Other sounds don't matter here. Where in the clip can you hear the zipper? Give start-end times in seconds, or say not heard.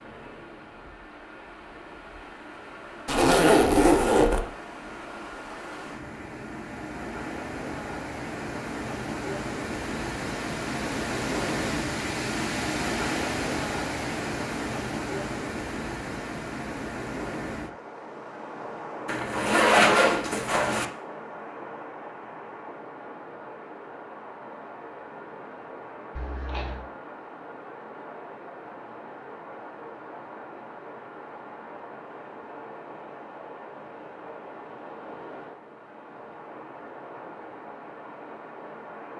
3.0-4.5, 19.1-20.9, 26.1-26.9.